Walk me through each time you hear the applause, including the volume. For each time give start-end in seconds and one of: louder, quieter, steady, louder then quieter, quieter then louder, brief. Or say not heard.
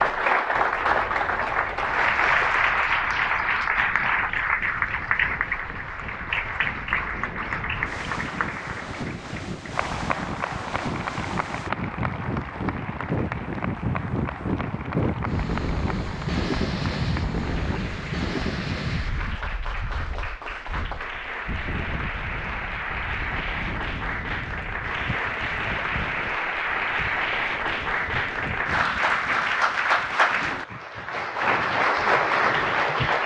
0.0-33.2 quieter then louder.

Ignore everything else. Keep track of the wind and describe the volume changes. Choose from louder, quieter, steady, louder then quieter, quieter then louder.
louder then quieter.